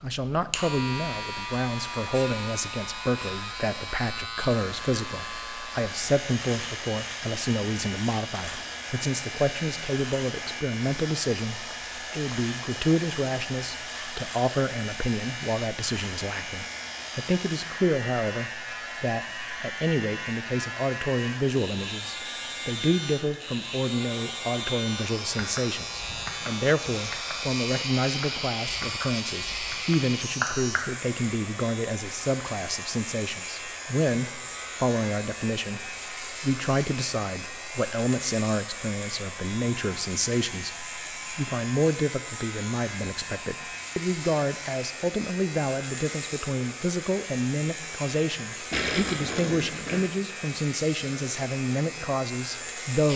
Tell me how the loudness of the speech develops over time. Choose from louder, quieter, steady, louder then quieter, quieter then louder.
steady.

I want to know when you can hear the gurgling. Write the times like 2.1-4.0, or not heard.
48.7-50.0.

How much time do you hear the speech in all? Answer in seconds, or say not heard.
53 s.